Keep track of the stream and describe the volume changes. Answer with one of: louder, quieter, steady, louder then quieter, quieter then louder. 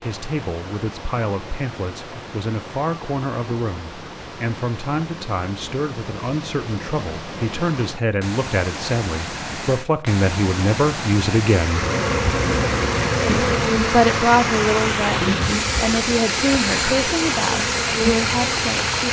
louder.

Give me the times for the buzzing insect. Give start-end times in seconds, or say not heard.
11.7-19.0.